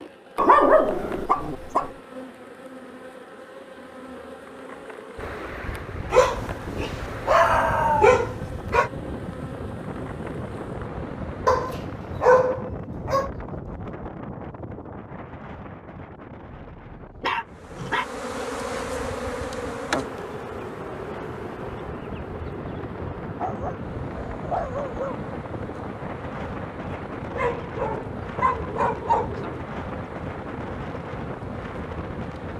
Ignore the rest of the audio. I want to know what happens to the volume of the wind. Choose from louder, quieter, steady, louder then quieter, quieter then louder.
quieter then louder.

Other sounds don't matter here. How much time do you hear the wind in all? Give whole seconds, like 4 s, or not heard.
27 s.